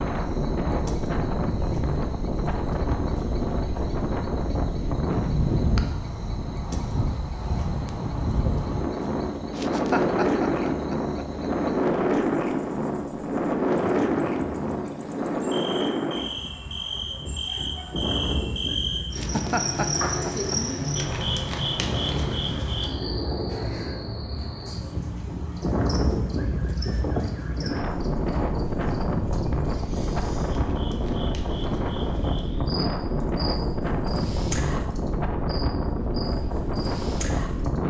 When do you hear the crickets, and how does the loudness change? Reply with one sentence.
The crickets can be heard from 0.0 to 37.8 s, getting louder then quieter.